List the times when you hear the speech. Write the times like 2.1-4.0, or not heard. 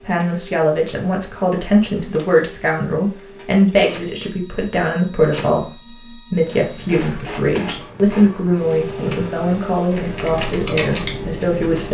0.0-11.8.